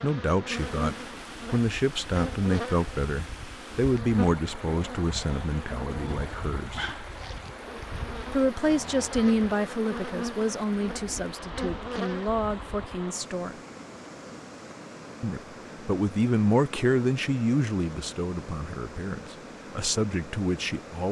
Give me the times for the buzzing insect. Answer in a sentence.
The buzzing insect can be heard from 0.0 to 13.2 s.